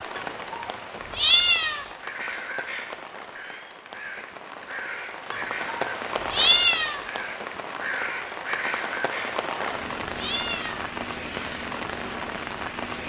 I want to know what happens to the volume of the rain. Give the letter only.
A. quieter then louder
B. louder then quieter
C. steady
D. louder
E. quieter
D.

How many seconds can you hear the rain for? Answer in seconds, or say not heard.
13 s.